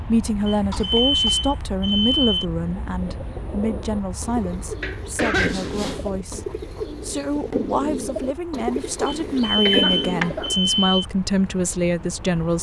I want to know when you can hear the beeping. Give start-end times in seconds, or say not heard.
0.5-2.5, 5.3-6.1, 9.1-11.1.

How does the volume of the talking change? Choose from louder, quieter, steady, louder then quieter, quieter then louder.
quieter then louder.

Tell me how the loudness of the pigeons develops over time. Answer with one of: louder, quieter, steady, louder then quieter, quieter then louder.
louder.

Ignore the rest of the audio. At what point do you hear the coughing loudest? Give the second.
5 s.